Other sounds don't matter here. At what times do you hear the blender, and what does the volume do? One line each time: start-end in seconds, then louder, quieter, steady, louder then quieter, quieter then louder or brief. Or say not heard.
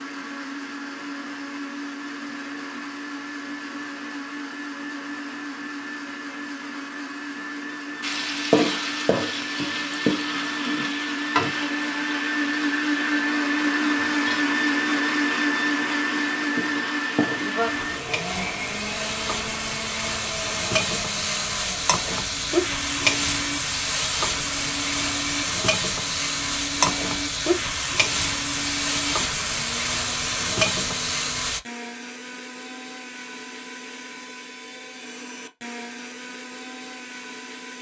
0.0-37.7 louder then quieter.